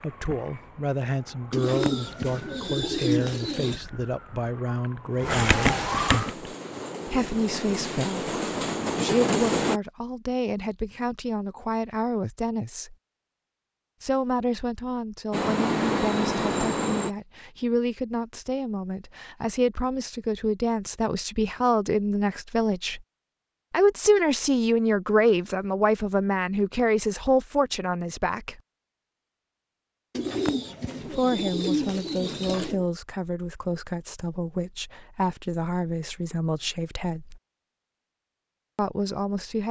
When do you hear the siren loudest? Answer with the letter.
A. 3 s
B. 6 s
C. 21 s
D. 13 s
B.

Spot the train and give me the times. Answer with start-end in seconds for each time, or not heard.
6.2-9.8, 15.3-17.1.